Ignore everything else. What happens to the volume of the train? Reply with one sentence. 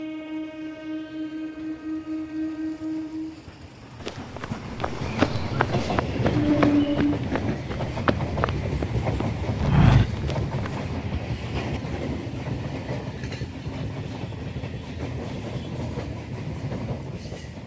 The volume of the train goes up, then down.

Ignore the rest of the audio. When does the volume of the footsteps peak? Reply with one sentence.
The loudest moment of the footsteps is at 10 seconds.